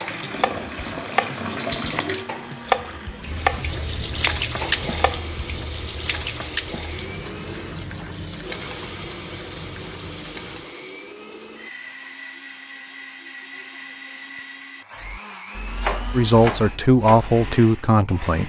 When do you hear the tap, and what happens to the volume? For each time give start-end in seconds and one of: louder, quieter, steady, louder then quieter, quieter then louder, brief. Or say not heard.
0.0-10.8 quieter.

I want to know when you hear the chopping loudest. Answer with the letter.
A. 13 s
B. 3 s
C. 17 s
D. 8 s
B.